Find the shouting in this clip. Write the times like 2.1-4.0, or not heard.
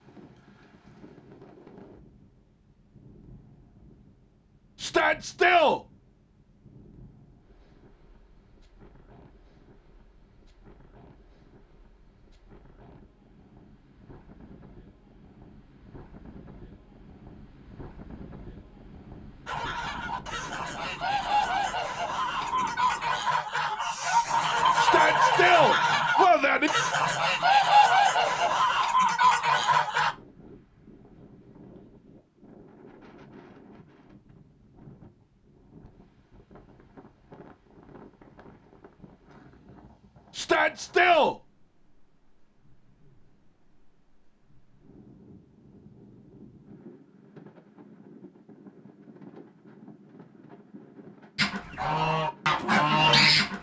4.8-5.8, 24.8-26.7, 40.4-41.4.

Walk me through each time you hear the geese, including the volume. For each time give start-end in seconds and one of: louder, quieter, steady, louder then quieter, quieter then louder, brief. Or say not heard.
19.4-30.1 louder
51.4-53.5 brief.